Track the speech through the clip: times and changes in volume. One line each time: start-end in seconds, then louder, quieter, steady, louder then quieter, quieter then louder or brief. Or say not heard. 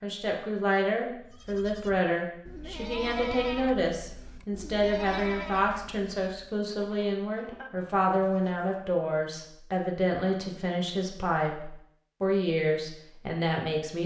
0.0-14.0 steady.